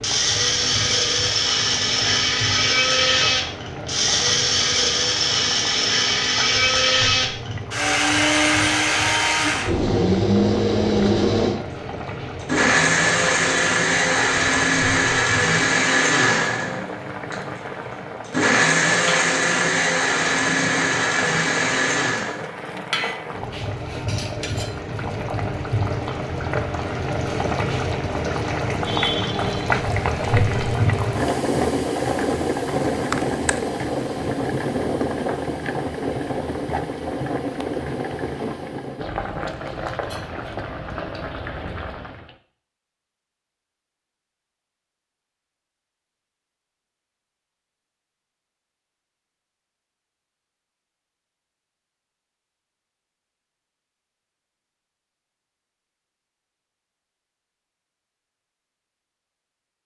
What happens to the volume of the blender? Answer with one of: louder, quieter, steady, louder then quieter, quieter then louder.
steady.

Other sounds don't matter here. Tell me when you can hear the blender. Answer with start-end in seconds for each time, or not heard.
0.0-22.4.